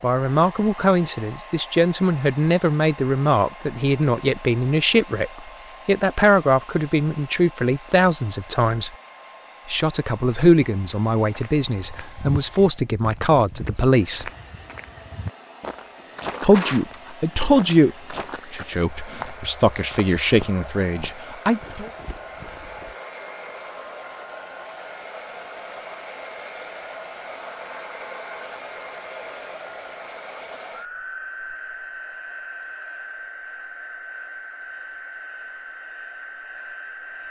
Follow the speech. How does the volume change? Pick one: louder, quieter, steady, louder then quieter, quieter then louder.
steady.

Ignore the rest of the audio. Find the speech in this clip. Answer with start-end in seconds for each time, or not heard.
0.0-8.9, 9.7-14.3, 16.4-21.9.